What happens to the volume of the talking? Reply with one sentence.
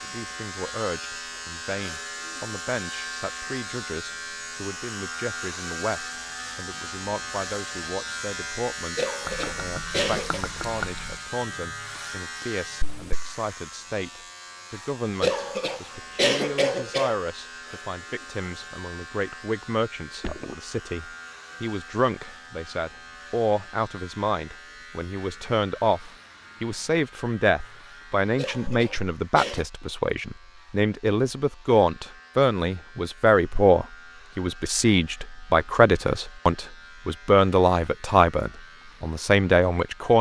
The volume of the talking goes up.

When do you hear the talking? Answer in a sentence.
You can hear the talking from 0.0 to 40.1 s.